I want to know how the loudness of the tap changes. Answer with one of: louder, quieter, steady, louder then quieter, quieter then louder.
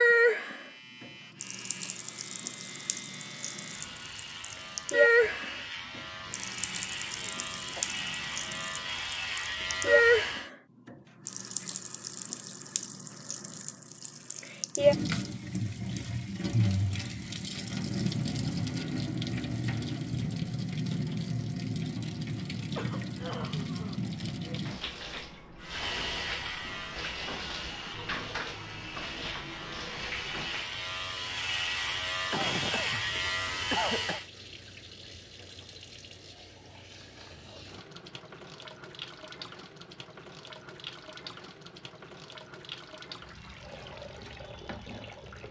quieter.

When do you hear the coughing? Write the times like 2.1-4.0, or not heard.
7.2-7.8, 22.6-24.6, 32.3-34.2.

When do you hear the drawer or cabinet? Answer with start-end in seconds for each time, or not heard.
not heard.